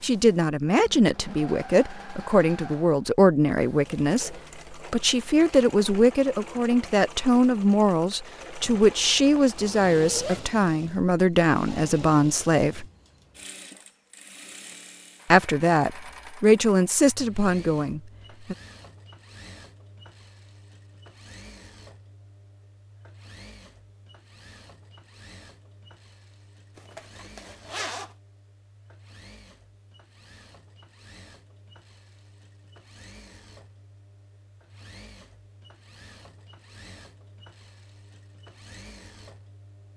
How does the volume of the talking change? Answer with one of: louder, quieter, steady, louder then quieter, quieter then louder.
steady.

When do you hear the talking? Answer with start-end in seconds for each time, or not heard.
0.0-12.8, 15.3-18.6.